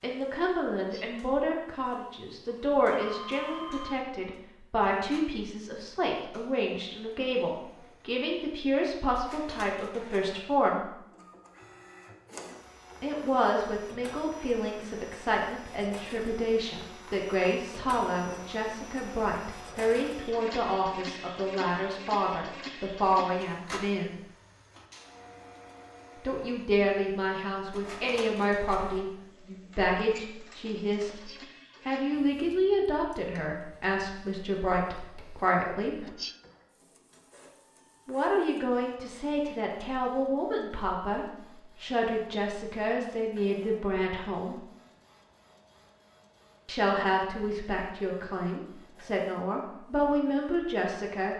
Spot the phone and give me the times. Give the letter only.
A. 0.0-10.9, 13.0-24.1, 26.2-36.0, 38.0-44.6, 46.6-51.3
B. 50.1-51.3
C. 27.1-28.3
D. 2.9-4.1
D.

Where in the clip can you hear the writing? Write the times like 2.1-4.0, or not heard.
not heard.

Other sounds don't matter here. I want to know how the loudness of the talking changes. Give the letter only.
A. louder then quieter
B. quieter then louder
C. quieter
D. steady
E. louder
D.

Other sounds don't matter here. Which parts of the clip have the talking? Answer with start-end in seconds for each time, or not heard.
0.0-10.9, 13.0-24.1, 26.2-36.0, 38.0-44.6, 46.6-51.3.